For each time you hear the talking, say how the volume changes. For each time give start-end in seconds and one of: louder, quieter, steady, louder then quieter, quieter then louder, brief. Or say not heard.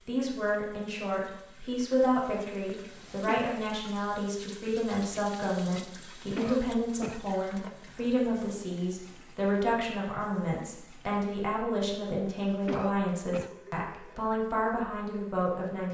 0.1-15.8 steady.